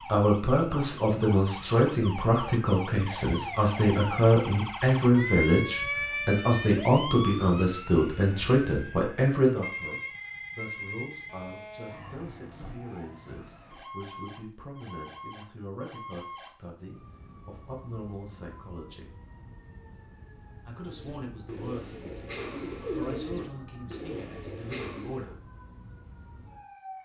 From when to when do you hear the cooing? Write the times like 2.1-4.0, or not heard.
20.9-25.4.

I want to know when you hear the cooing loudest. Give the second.
23 s.